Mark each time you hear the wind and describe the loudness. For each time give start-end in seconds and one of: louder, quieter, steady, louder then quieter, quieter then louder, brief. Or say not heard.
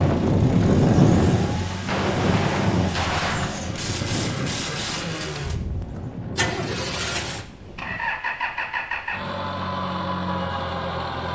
0.0-8.2 quieter.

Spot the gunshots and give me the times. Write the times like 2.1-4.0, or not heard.
1.9-3.6.